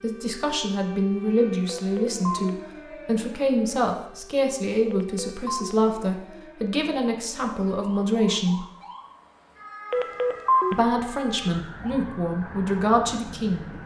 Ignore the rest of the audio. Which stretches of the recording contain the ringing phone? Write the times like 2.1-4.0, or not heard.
1.6-2.5, 4.9-5.8, 9.9-10.8.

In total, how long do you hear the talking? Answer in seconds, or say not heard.
12 s.